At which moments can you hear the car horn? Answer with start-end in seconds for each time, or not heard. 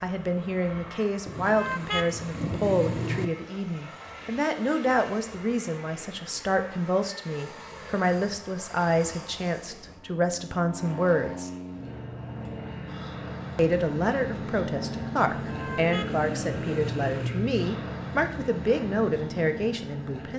1.2-3.3, 15.3-17.3.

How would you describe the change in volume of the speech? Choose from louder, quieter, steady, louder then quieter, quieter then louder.
steady.